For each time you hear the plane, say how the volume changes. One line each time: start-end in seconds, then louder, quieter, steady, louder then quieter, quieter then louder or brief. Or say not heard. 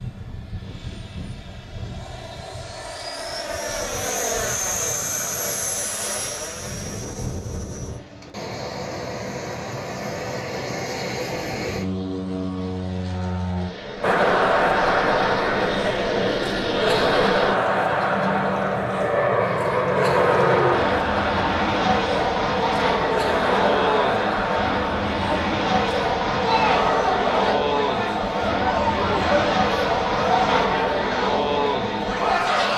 0.0-32.7 louder.